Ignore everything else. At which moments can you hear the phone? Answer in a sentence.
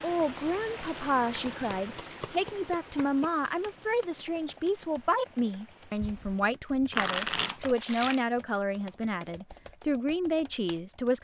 The phone can't be heard in this clip.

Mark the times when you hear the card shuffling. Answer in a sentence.
The card shuffling can be heard from 1.4 to 3.3 s and from 6.9 to 8.2 s.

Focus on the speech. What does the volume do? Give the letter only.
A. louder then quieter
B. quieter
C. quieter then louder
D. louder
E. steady
E.